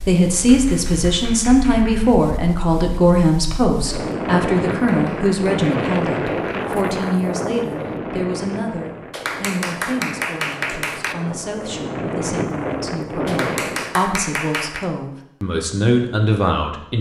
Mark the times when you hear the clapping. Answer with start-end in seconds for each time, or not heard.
0.3-2.1, 4.7-6.6, 9.1-11.2, 13.2-14.9.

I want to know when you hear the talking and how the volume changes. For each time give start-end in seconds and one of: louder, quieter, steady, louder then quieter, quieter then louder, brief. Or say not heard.
0.0-16.9 quieter then louder.